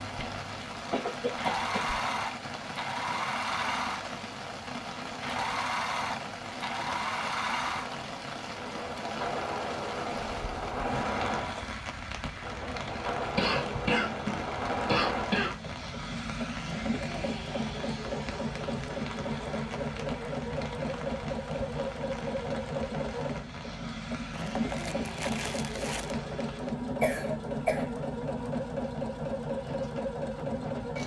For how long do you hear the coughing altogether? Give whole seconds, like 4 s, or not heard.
4 s.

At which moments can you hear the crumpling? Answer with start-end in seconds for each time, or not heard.
24.3-26.2.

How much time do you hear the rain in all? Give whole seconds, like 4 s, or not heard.
31 s.